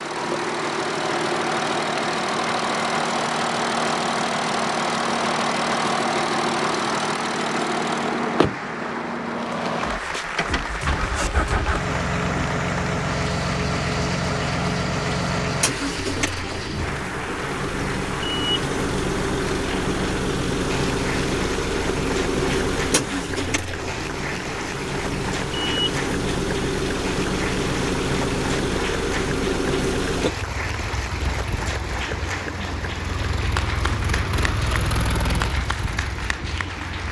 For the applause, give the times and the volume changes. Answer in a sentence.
You can hear the applause from 0.0 to 37.0 s, at a steady volume.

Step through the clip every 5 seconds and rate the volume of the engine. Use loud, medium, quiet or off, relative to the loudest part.
loud, loud, loud, loud, loud, loud, medium, medium.